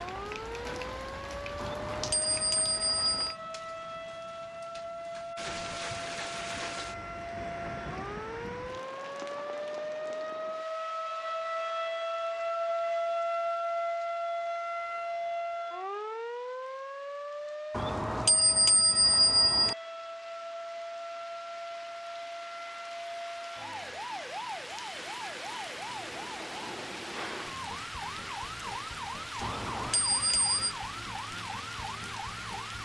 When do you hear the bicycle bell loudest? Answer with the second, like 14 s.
19 s.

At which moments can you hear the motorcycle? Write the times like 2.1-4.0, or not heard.
not heard.